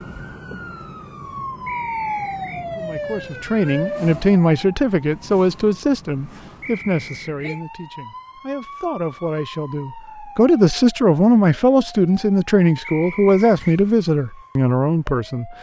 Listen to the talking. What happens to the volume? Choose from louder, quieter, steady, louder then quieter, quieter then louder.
quieter then louder.